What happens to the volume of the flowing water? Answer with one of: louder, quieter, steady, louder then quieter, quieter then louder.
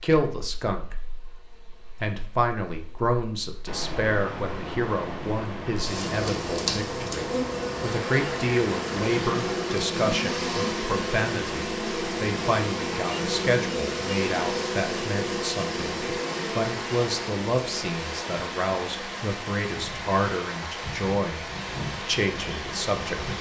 steady.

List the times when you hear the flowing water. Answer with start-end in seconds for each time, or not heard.
3.6-23.3.